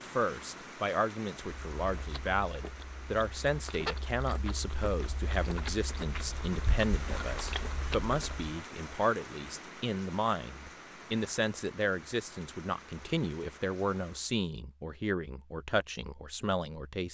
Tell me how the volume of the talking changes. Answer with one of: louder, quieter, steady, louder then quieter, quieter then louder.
steady.